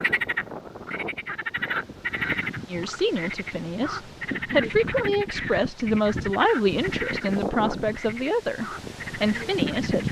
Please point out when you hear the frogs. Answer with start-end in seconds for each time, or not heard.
0.0-10.0.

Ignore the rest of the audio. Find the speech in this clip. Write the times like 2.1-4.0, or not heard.
2.6-10.0.